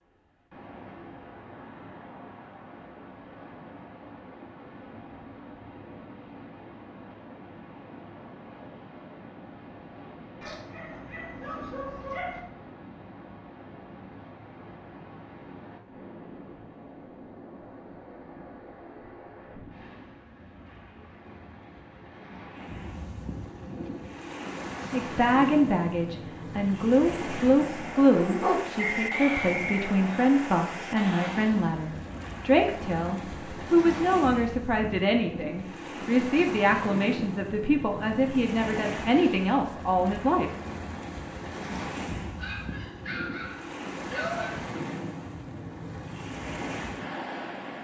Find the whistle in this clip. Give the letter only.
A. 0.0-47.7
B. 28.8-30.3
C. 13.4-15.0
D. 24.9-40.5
B.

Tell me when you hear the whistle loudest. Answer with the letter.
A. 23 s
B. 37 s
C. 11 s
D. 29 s
D.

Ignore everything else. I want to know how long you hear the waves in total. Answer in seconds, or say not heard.
48 s.